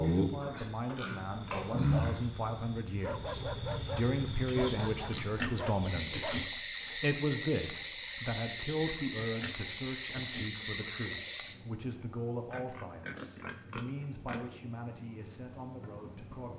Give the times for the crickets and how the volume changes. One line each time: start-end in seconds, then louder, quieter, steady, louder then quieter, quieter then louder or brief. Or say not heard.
0.0-16.5 steady.